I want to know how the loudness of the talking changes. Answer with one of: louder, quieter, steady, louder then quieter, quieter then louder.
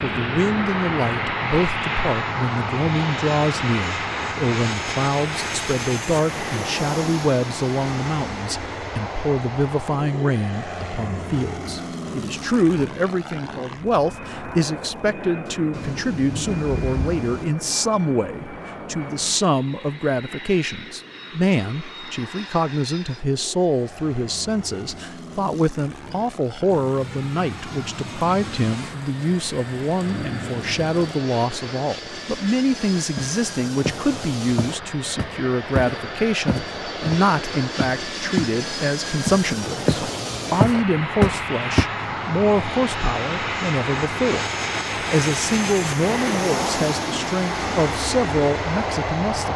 steady.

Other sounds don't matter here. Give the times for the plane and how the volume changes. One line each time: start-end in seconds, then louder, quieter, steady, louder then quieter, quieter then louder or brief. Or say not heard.
0.0-49.5 quieter then louder.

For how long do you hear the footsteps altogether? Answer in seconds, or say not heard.
8 s.